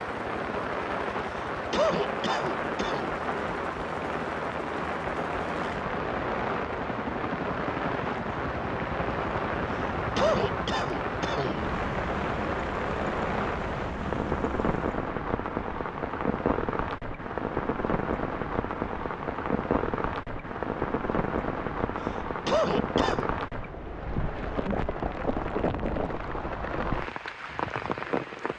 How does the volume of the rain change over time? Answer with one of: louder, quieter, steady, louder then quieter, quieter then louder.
steady.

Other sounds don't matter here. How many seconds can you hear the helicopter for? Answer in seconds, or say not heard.
15 s.